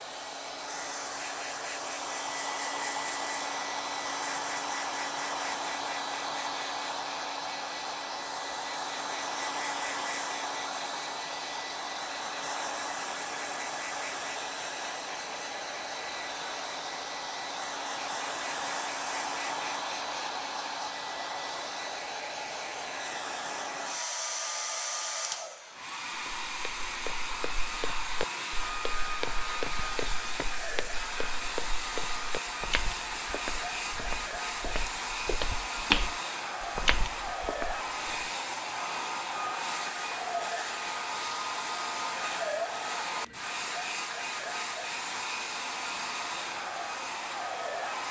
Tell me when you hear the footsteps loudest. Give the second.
36 s.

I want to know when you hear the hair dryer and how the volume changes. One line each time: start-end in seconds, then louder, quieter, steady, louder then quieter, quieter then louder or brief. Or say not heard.
0.0-48.0 steady.